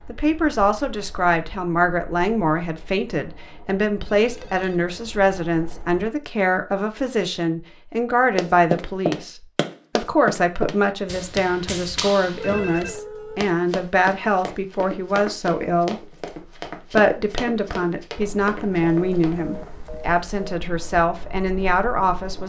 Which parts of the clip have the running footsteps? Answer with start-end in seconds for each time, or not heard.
8.3-19.4.